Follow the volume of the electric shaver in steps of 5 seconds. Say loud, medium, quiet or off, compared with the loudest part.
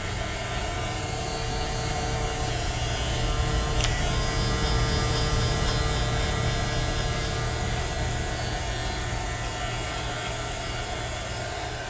loud, loud, medium.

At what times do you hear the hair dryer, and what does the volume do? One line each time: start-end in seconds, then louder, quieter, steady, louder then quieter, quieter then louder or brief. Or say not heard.
0.0-11.8 steady.